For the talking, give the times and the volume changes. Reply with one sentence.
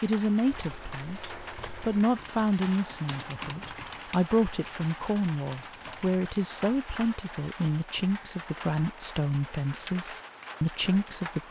You can hear the talking from 0.0 to 11.4 s, at a steady volume.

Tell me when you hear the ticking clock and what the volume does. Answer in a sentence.
You can't hear the ticking clock here.